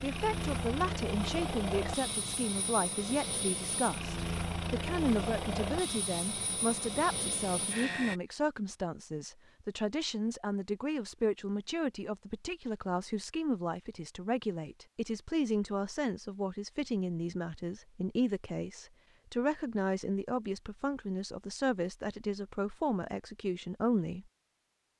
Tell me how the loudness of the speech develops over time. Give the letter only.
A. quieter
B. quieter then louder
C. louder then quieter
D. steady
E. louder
D.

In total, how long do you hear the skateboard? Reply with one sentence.
You can't hear the skateboard here.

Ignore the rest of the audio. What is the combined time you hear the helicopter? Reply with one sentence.
You can hear the helicopter for 8 seconds altogether.